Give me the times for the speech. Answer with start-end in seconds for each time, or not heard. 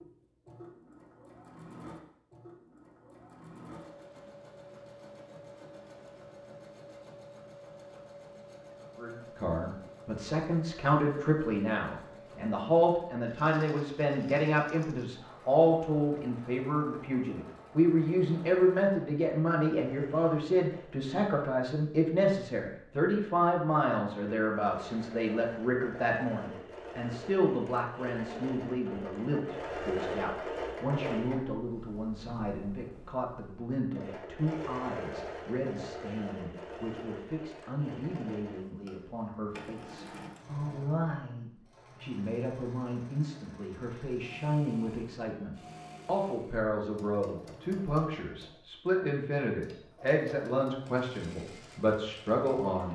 8.9-52.9.